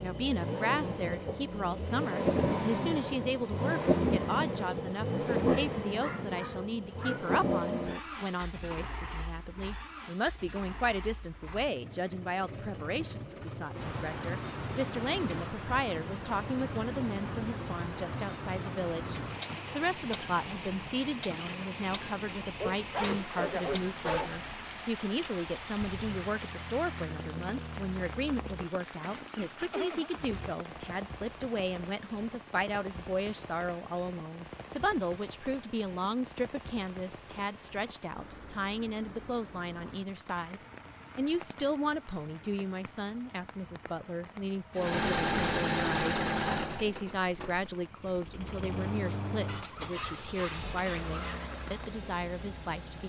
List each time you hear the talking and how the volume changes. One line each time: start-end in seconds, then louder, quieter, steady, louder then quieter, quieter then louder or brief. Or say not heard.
0.0-53.0 steady.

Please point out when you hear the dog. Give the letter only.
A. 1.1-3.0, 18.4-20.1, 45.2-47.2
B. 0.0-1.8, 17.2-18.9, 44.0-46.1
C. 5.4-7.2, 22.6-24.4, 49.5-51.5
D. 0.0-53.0
C.